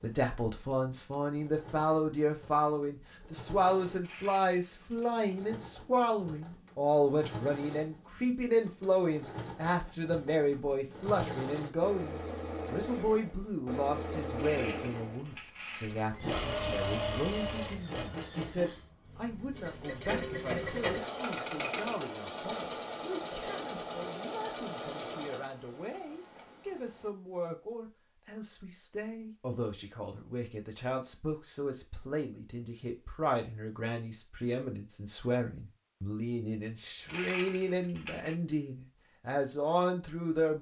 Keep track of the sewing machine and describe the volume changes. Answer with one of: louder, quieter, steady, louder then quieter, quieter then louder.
louder.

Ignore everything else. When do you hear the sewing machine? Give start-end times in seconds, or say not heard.
0.0-27.1.